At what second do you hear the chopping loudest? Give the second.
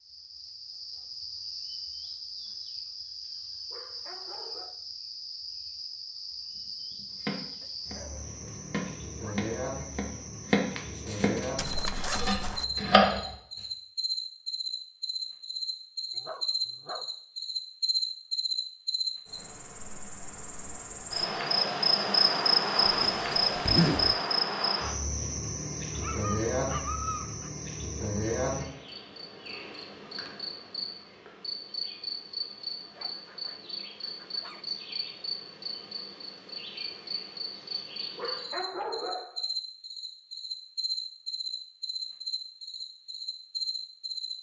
13 s.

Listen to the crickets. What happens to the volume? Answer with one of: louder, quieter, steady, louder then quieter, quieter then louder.
louder then quieter.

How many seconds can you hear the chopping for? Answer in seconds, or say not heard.
6 s.